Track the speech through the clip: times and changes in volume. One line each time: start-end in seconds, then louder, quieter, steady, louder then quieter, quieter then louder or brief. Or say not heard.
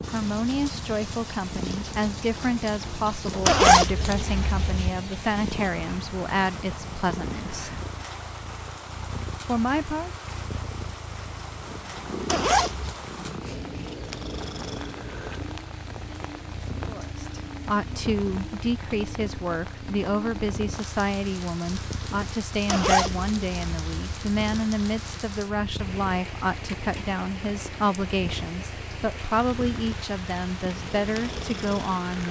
0.1-7.8 steady
9.4-10.1 brief
16.9-32.2 steady.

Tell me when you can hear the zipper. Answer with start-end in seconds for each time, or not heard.
3.5-4.9, 12.2-12.9, 22.6-24.1.